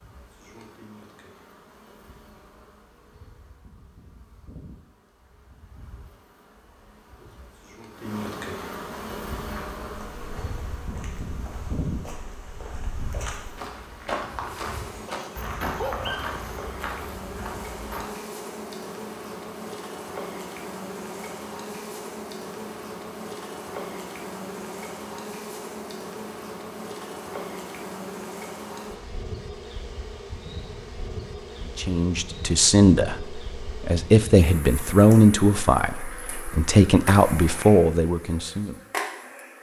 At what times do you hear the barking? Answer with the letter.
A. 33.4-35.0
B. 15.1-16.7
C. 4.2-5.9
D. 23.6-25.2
B.